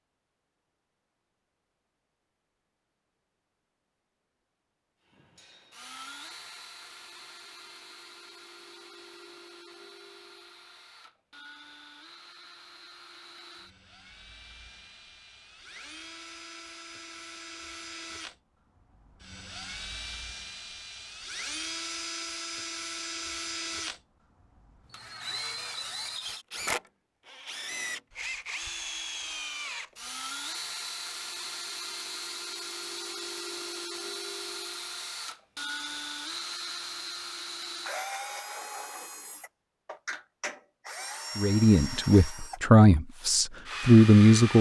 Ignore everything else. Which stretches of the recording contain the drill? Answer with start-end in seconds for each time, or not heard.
5.1-44.5.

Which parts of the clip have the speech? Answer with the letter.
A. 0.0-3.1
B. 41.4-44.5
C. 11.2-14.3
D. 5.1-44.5
B.